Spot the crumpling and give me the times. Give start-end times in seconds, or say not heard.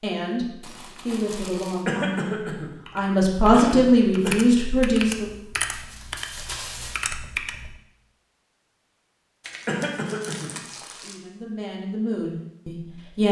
0.6-1.9, 5.7-7.1, 9.4-11.2.